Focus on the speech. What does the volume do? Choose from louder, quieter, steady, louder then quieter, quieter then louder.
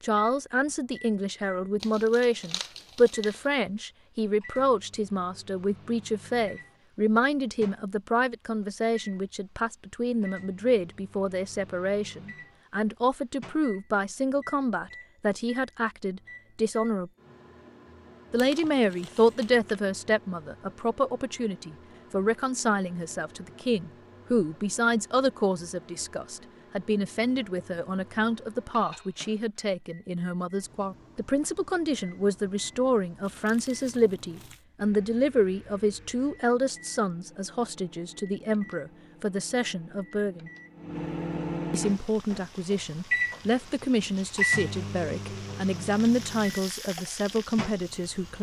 steady.